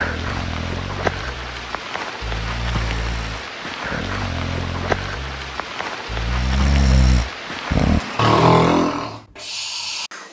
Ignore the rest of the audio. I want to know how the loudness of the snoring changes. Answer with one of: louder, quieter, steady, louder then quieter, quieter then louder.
louder.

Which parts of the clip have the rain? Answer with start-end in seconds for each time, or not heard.
0.0-8.4.